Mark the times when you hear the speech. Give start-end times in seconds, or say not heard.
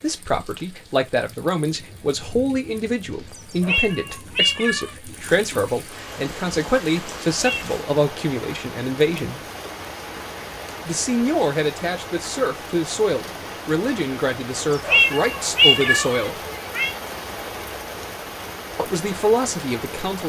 0.0-9.4, 10.8-16.4, 18.8-20.2.